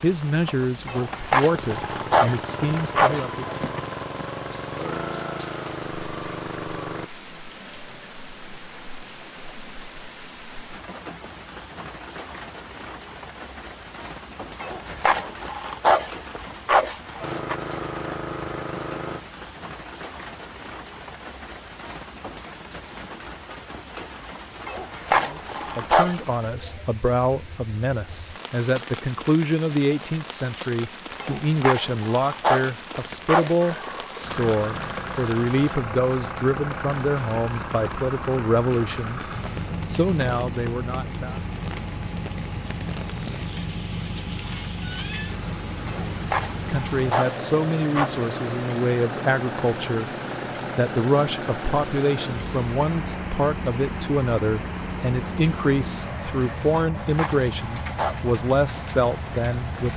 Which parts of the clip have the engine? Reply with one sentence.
The engine can be heard from 0.0 to 7.1 s, from 17.2 to 19.2 s and from 33.6 to 59.9 s.